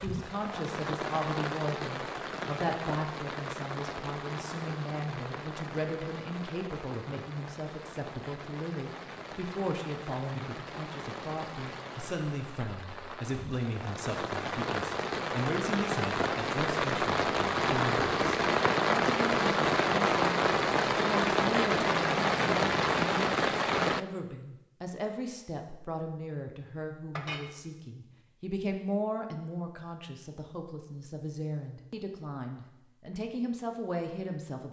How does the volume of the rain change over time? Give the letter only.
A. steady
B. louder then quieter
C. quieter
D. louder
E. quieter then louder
E.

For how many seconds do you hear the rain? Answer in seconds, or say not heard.
24 s.